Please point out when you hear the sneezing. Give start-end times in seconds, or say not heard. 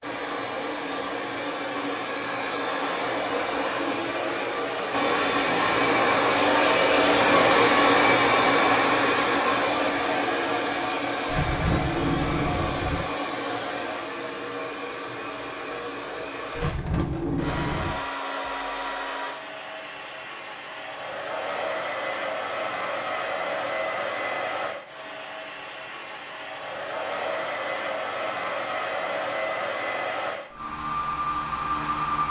not heard.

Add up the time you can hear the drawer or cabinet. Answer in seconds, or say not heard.
3 s.